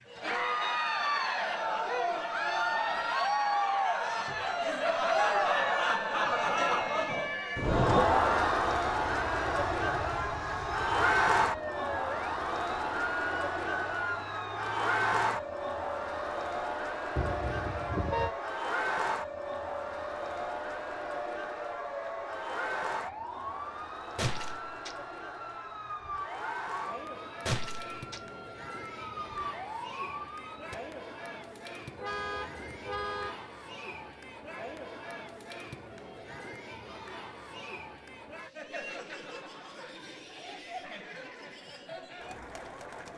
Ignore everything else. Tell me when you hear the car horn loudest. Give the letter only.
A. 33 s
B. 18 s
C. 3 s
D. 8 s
D.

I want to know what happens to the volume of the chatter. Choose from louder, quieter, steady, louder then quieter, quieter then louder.
quieter.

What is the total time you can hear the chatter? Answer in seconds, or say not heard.
43 s.